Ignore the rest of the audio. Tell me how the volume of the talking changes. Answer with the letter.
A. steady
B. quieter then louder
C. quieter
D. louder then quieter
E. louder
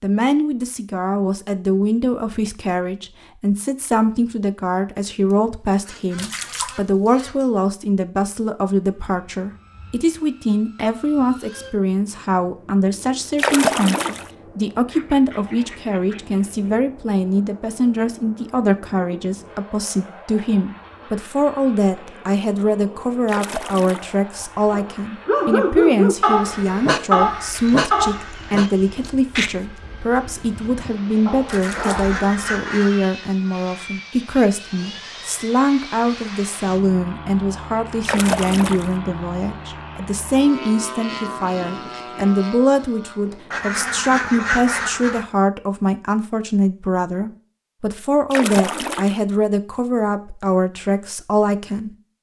A.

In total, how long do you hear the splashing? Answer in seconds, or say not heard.
5 s.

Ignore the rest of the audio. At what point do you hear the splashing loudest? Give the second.
14 s.